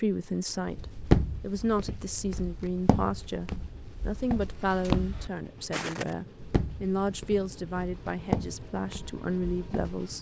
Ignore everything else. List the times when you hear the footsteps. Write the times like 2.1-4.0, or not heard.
0.7-10.1.